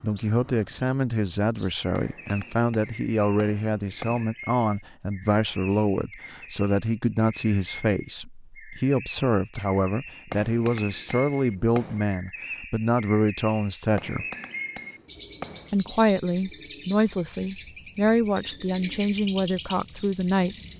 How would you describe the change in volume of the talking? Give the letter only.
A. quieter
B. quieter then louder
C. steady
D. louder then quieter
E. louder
C.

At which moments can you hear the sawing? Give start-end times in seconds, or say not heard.
not heard.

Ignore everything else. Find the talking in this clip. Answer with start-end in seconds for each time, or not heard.
0.0-14.2, 15.7-20.6.